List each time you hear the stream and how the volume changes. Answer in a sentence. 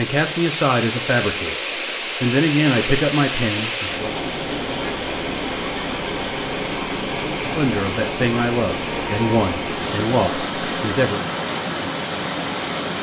You can hear the stream from 0.0 to 12.9 s, at a steady volume.